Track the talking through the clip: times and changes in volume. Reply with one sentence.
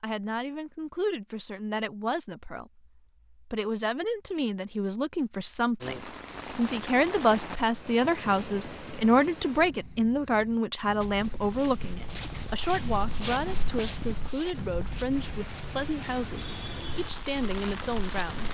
You can hear the talking from 0.0 to 18.5 s, getting louder then quieter.